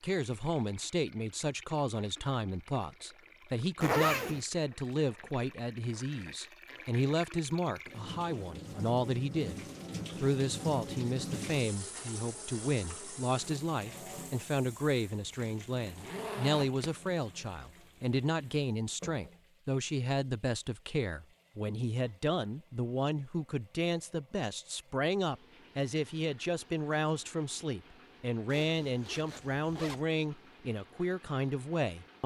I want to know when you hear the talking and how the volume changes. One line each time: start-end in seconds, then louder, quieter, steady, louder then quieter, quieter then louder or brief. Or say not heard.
0.0-32.2 steady.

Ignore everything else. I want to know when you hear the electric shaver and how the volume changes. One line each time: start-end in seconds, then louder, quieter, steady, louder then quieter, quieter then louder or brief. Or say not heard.
not heard.